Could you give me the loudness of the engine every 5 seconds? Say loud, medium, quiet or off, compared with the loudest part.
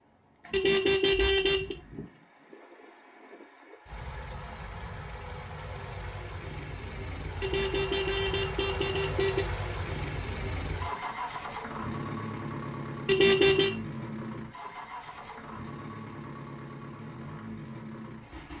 medium, loud, loud, medium.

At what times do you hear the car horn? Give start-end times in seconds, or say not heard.
0.5-1.8, 7.4-9.4, 13.1-13.8.